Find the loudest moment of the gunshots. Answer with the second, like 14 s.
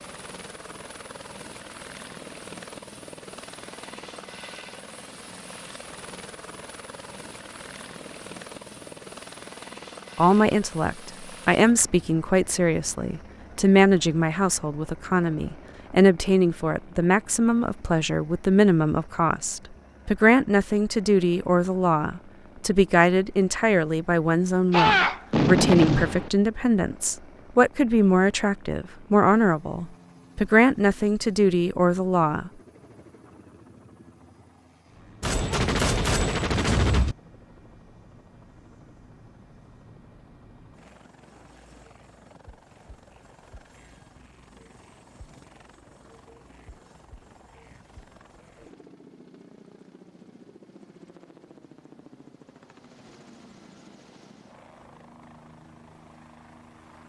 25 s.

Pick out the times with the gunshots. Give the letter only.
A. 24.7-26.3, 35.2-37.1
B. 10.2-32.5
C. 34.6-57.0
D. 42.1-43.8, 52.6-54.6
A.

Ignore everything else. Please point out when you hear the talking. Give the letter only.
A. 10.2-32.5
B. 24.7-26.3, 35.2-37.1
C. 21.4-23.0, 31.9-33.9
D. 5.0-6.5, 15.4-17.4
A.